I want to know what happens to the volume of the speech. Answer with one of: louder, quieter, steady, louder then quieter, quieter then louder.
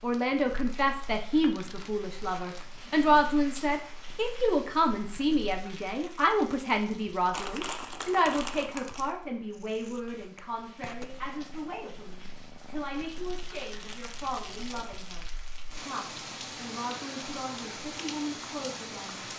quieter.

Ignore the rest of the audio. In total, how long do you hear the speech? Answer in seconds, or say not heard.
19 s.